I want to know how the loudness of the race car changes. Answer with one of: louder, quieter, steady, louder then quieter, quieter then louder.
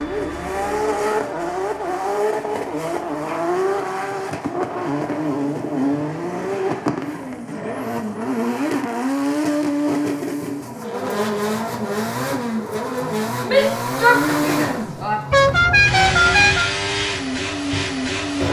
steady.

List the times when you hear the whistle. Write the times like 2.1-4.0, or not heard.
not heard.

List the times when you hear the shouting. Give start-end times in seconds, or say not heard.
13.4-15.2.